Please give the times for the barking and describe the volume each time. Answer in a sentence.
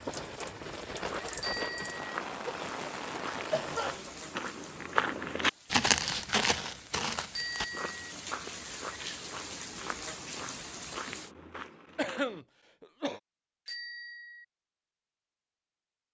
You can't hear the barking here.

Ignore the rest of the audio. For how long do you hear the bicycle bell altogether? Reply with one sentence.
The bicycle bell can be heard for 2 seconds in total.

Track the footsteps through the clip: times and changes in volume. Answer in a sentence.
You can hear the footsteps from 0.9 to 12.4 s, getting louder then quieter.